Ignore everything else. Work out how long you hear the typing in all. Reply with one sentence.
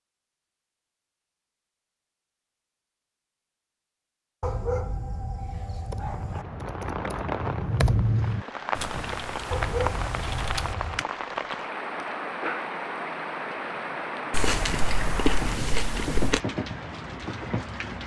The typing can be heard for 5 seconds in total.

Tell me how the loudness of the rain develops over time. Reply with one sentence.
The loudness of the rain stays about the same.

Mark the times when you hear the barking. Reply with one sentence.
The barking can be heard from 4.4 to 6.5 s and from 9.5 to 11.0 s.